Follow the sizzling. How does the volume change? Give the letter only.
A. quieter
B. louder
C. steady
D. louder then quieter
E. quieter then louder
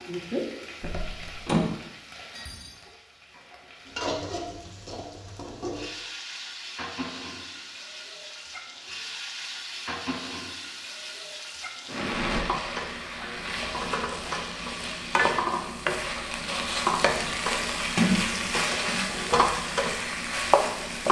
B.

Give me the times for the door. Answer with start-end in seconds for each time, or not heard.
0.8-1.6, 17.9-19.1.